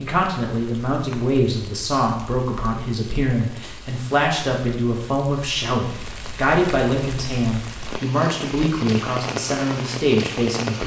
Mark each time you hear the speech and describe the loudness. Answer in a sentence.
The speech can be heard from 0.0 to 10.8 s, at a steady volume.